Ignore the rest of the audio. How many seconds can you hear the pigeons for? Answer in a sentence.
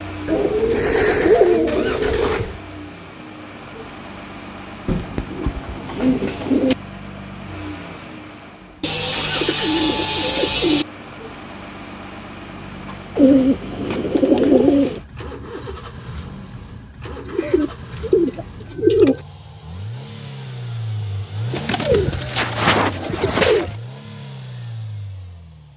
You can hear the pigeons for 12 seconds altogether.